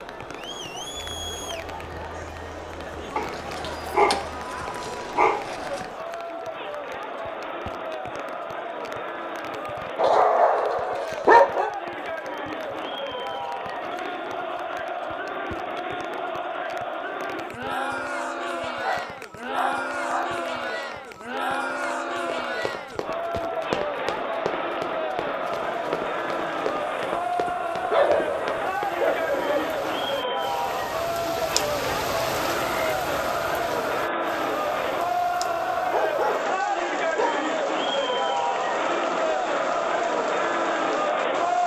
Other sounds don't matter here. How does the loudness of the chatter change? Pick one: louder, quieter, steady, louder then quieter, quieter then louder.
louder.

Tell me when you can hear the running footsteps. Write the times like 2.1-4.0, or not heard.
22.2-28.9.